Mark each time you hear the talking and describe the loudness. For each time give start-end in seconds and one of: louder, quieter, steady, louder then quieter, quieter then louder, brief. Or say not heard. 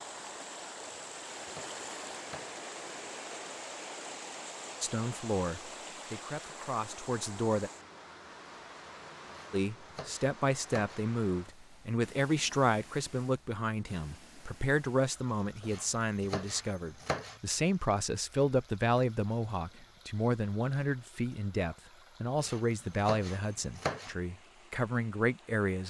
4.8-7.7 brief
9.5-25.8 steady.